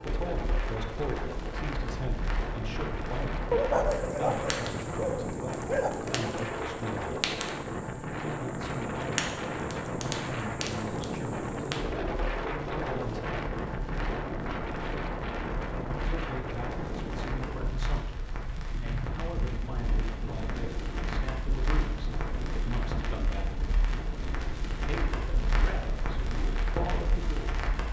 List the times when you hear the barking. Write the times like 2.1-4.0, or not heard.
3.5-5.9.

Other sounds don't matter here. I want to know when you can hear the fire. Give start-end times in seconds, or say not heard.
0.0-27.8.